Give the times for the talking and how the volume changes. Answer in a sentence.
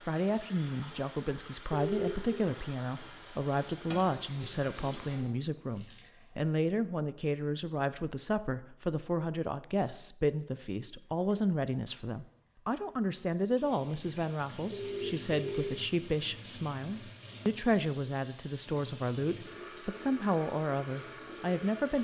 The talking can be heard from 0.1 to 21.9 s, at a steady volume.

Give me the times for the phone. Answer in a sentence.
You can hear the phone from 1.7 to 2.3 s and from 14.7 to 15.9 s.